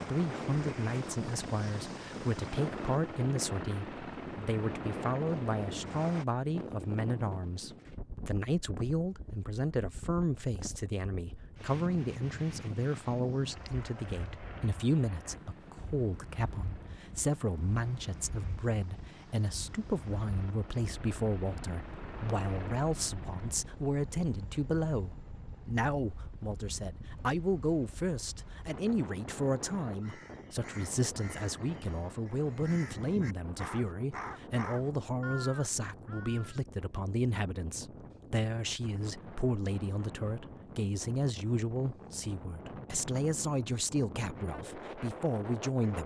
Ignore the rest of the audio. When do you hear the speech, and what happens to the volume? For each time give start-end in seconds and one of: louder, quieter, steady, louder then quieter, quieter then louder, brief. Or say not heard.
0.1-46.0 steady.